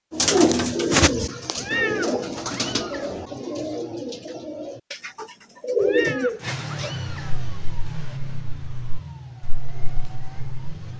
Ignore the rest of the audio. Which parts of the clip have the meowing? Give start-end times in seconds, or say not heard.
1.6-3.1, 5.8-7.3.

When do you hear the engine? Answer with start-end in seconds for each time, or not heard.
6.4-10.9.